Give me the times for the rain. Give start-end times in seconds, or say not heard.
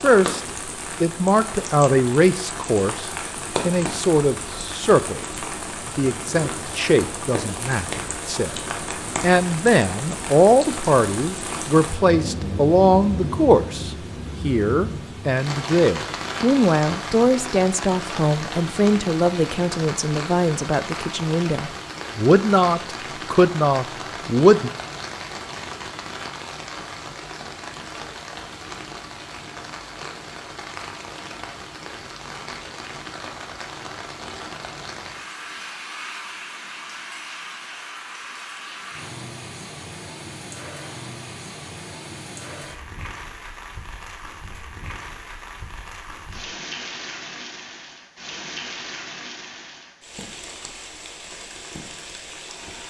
0.0-52.8.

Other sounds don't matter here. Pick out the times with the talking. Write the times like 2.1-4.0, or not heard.
0.0-5.2, 5.8-8.6, 9.2-24.7.